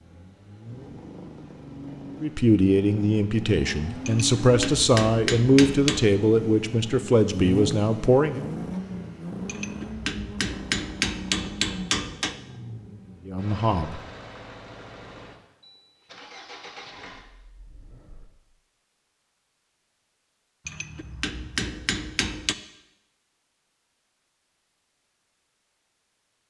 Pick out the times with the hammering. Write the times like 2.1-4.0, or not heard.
4.0-6.0, 9.4-12.4, 20.6-22.6.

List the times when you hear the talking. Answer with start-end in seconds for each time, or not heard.
2.2-8.4, 13.2-14.0.